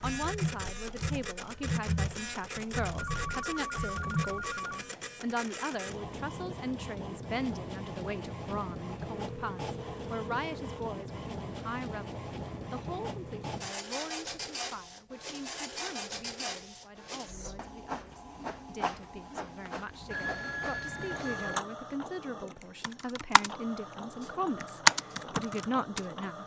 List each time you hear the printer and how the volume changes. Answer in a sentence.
The printer can be heard from 0.0 to 26.4 s, at a steady volume.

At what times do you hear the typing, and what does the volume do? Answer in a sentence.
The typing can be heard from 0.0 to 4.5 s, getting quieter; briefly from 22.8 to 23.5 s; and briefly from 24.6 to 26.0 s.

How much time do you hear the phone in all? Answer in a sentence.
The phone can be heard for 5 seconds in total.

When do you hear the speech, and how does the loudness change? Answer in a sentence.
The speech can be heard from 0.0 to 26.4 s, getting quieter then louder.